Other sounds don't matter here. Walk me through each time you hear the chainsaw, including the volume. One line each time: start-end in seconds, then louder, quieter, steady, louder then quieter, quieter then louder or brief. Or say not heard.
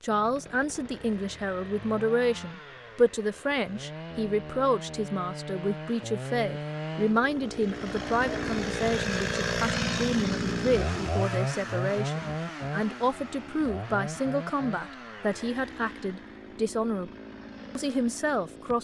0.0-18.7 louder then quieter.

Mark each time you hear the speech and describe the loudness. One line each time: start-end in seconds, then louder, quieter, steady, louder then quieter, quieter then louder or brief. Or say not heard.
0.0-17.1 steady
17.8-18.7 brief.